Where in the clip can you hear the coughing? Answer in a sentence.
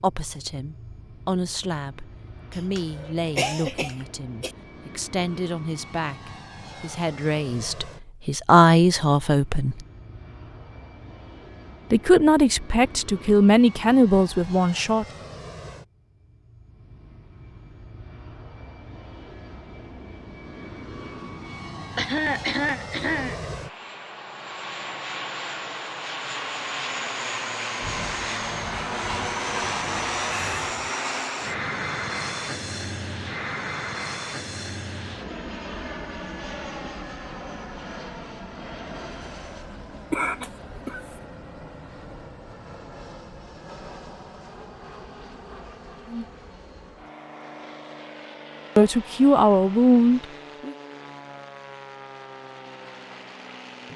The coughing can be heard from 2.5 to 4.5 s, from 21.9 to 23.5 s and from 40.1 to 41.0 s.